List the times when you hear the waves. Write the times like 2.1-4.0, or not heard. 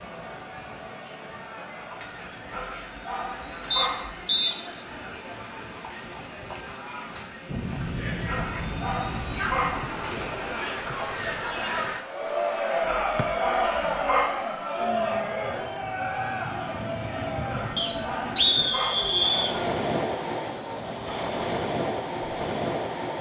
7.5-23.1.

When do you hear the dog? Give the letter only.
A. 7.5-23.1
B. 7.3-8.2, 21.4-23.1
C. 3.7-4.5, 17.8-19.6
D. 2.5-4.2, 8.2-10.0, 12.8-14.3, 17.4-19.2
D.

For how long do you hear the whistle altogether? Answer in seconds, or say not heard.
3 s.